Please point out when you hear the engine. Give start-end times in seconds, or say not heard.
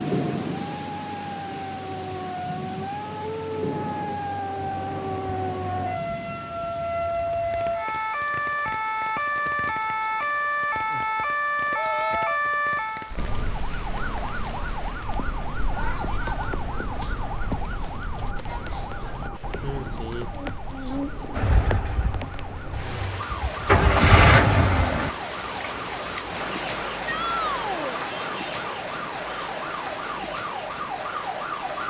21.3-25.1.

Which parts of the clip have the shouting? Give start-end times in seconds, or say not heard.
11.7-12.4, 27.1-28.0.